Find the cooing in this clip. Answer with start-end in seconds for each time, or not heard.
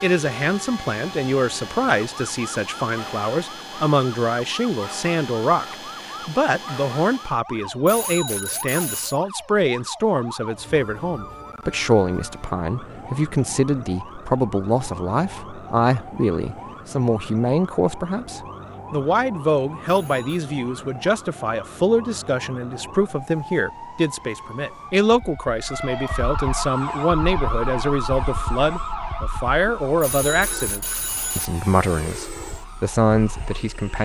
not heard.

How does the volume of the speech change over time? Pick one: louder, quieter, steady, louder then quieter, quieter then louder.
steady.